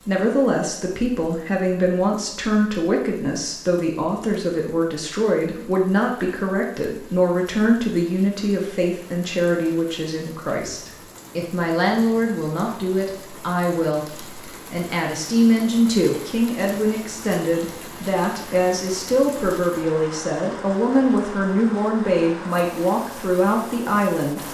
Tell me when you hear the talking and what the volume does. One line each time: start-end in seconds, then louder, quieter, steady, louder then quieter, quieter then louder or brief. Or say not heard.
0.0-24.4 steady.